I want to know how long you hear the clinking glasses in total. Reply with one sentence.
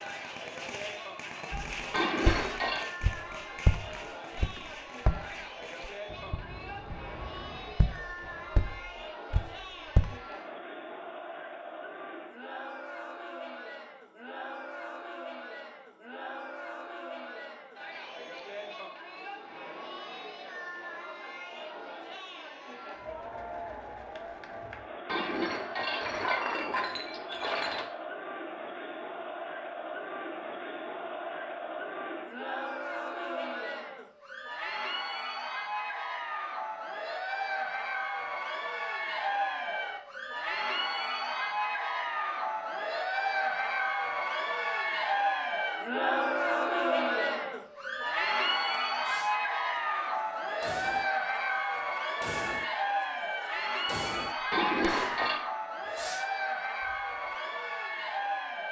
The clinking glasses can be heard for 5 seconds in total.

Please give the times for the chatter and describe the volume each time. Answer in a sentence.
The chatter can be heard from 0.0 to 58.6 s, getting louder.